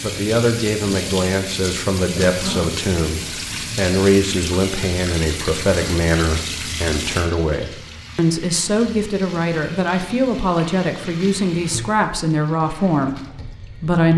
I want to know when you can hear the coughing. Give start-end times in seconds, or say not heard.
2.2-2.8.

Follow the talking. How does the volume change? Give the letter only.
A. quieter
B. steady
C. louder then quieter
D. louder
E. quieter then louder
B.